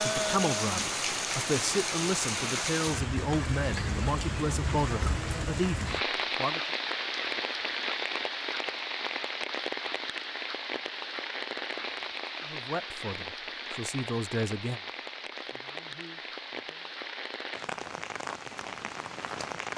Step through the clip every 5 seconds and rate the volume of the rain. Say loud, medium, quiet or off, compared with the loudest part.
loud, loud, medium, medium.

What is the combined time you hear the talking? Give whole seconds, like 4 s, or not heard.
11 s.